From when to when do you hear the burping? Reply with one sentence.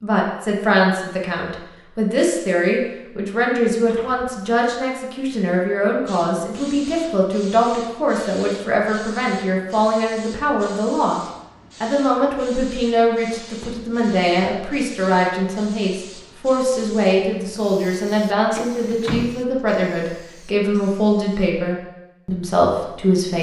The burping can't be heard in this clip.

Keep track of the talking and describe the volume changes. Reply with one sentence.
The loudness of the talking stays about the same.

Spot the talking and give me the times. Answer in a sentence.
The talking can be heard from 0.0 to 11.2 s and from 11.8 to 23.3 s.